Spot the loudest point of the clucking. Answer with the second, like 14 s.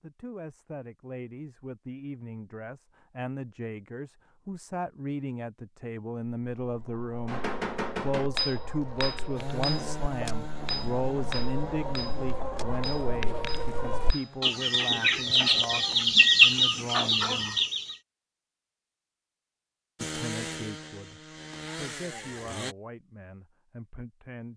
16 s.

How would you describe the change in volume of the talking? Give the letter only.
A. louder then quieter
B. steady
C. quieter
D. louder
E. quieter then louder
A.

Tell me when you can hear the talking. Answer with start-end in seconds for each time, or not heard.
0.0-17.6, 20.0-24.5.